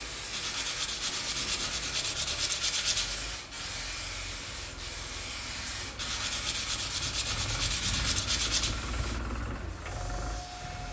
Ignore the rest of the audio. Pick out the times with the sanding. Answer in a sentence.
The sanding can be heard from 0.3 to 3.2 s and from 6.0 to 8.8 s.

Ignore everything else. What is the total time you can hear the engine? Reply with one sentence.
The engine can be heard for 11 seconds in total.